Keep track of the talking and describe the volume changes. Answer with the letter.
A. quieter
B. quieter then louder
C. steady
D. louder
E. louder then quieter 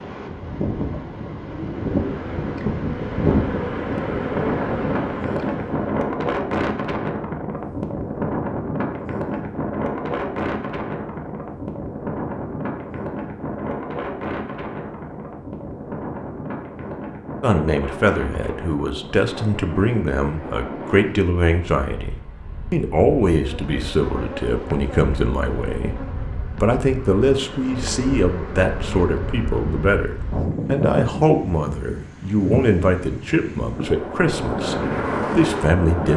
C.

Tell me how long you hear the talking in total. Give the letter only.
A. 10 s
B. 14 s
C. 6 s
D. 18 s
D.